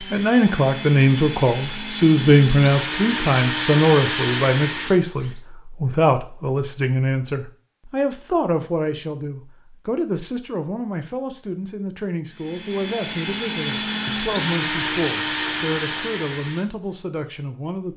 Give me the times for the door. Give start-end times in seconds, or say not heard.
not heard.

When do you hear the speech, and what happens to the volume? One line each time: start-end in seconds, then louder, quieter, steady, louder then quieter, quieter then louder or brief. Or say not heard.
0.0-17.9 quieter.